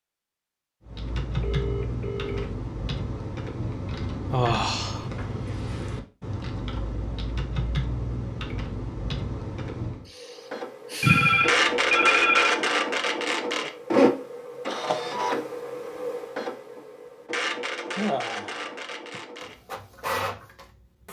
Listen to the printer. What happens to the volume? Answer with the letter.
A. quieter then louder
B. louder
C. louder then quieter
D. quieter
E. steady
D.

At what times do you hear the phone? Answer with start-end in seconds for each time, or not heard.
1.4-2.5, 11.0-12.6.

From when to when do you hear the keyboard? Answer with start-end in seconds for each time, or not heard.
0.8-10.1.